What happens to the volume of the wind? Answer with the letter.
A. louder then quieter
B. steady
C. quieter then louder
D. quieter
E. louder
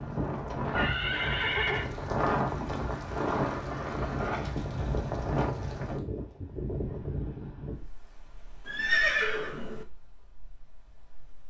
D.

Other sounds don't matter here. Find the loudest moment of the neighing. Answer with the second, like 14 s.
9 s.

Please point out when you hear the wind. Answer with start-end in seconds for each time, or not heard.
0.0-11.4.